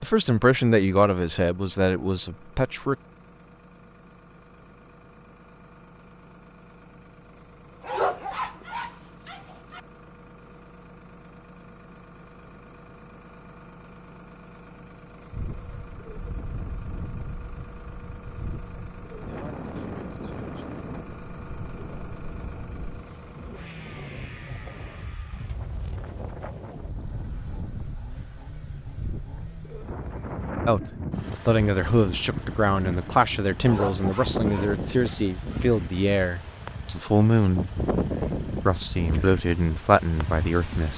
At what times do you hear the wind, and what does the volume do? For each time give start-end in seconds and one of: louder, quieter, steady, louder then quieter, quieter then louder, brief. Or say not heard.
15.3-40.9 louder.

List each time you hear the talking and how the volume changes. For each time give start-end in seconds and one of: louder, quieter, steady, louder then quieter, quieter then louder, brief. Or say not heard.
0.0-3.0 brief
30.6-37.8 steady
38.6-40.9 brief.